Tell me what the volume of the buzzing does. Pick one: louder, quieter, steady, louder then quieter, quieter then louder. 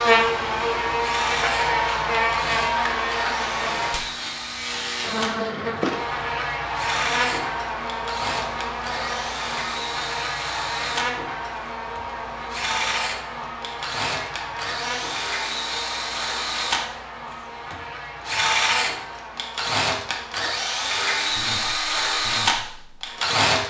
quieter.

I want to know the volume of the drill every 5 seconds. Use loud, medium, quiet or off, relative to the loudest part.
medium, medium, medium, loud, loud.